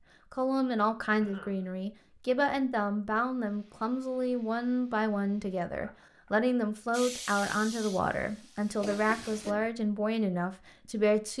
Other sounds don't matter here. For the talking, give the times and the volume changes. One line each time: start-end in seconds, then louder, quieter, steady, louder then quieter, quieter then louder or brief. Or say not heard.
0.3-11.3 steady.